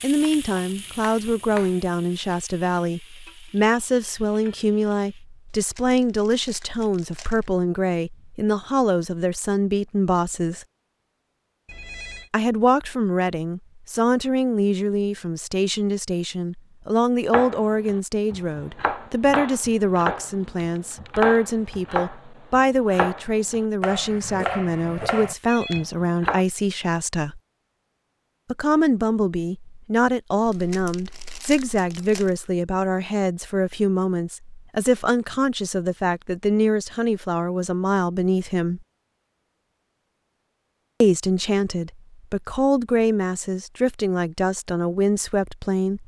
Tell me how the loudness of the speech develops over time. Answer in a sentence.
The volume of the speech stays about the same.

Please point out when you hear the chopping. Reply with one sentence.
The chopping can be heard from 0.0 to 1.9 s and from 17.3 to 26.4 s.